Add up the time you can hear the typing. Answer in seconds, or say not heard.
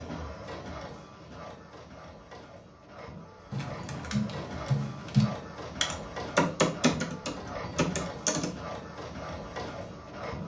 5 s.